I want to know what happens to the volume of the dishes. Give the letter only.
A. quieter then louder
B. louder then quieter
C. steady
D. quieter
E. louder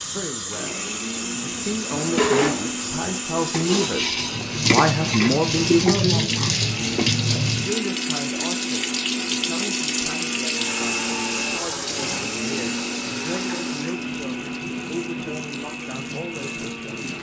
C.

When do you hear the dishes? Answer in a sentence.
You can hear the dishes from 1.9 to 7.2 s.